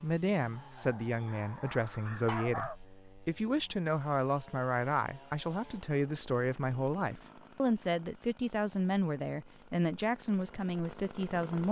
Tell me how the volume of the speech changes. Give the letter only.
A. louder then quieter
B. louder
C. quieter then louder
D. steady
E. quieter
D.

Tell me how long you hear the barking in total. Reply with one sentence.
You can hear the barking for 2 seconds altogether.